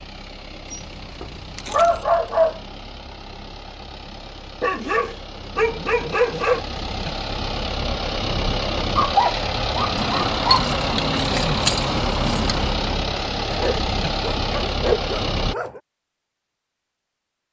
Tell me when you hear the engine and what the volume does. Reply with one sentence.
The engine can be heard from 0.0 to 15.6 s, getting louder.